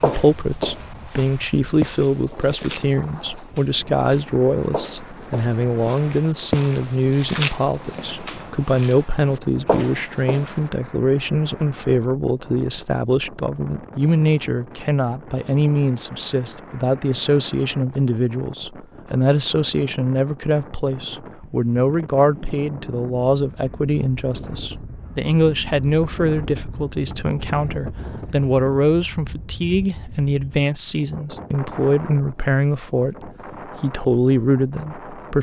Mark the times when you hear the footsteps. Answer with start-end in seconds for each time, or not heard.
0.0-10.7.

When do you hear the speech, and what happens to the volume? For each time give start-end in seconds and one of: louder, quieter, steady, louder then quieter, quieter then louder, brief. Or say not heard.
0.0-35.3 steady.